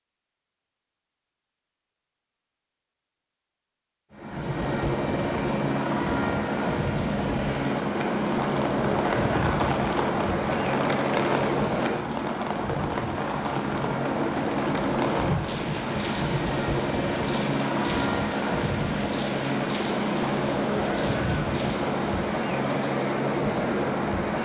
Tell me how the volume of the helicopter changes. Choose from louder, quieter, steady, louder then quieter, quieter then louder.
steady.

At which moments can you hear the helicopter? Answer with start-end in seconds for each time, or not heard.
4.1-24.4.